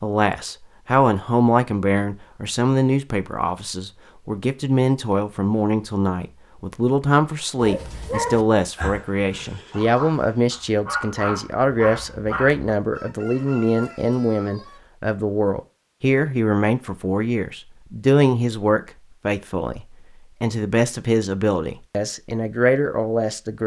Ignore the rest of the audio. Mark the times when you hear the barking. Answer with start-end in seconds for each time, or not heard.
7.5-12.8.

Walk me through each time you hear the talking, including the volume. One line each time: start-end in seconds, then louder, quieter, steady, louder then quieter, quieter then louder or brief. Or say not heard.
0.0-23.6 steady.